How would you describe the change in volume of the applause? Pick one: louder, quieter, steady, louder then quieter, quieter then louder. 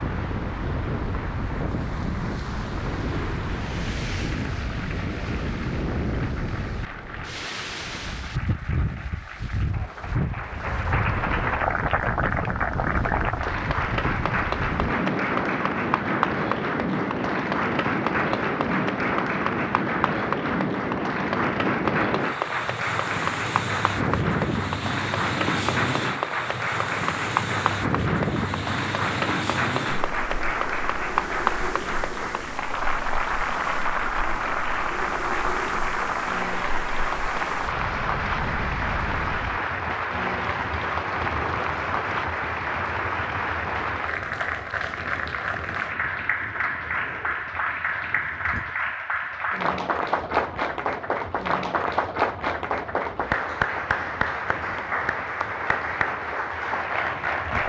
louder.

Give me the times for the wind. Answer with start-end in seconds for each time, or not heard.
0.0-57.6.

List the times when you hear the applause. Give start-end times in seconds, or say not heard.
0.0-57.6.